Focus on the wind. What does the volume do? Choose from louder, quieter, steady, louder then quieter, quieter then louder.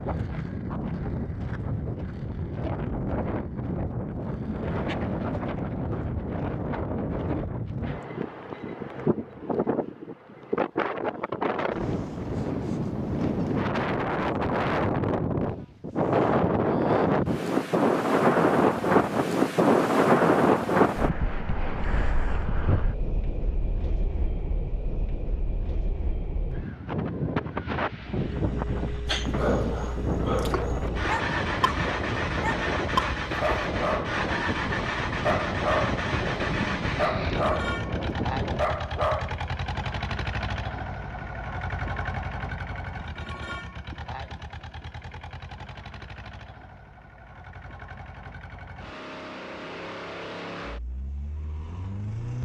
louder then quieter.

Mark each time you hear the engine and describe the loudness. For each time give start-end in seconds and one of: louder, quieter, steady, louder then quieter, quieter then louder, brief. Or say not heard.
28.1-52.4 quieter.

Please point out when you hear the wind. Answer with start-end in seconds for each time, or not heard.
0.0-38.9.